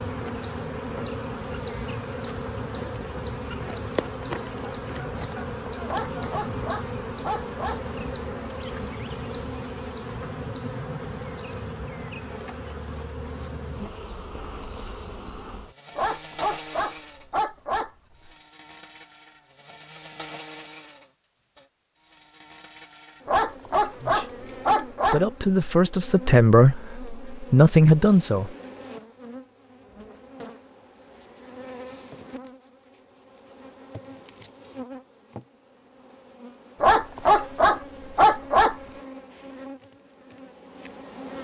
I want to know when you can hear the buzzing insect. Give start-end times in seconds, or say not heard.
0.0-41.3.